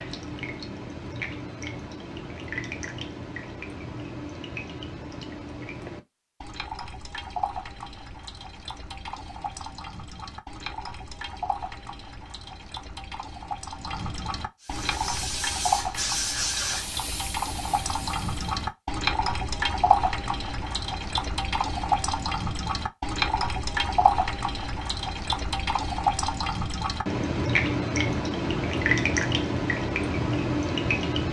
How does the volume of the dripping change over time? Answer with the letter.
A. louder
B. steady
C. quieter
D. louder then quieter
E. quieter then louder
A.